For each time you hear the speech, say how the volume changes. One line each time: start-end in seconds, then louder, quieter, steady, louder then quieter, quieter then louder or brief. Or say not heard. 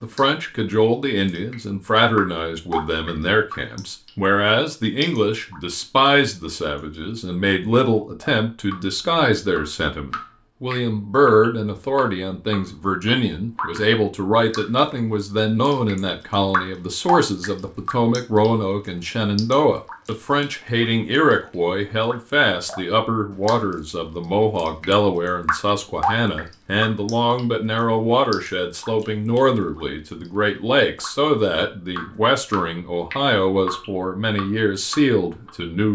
0.0-35.9 steady.